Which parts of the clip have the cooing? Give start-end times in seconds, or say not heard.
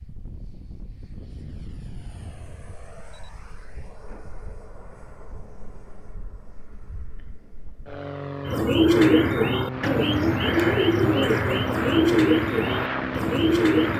8.4-13.9.